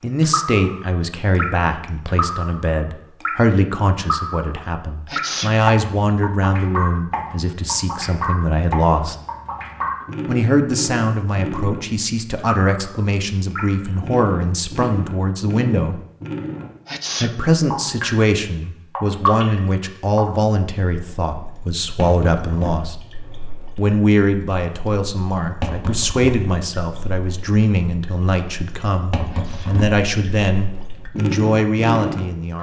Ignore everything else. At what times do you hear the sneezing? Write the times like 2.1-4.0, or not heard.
5.0-5.5, 16.9-17.4, 29.2-29.8.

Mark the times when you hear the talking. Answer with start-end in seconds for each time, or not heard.
0.0-9.2, 10.2-16.0, 17.2-22.9, 23.8-32.5.